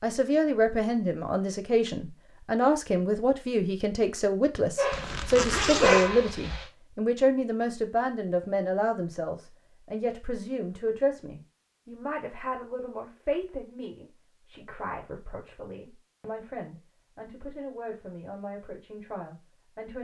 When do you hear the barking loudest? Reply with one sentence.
The loudest moment of the barking is at 6 seconds.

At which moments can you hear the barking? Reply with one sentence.
The barking can be heard from 4.8 to 6.7 s.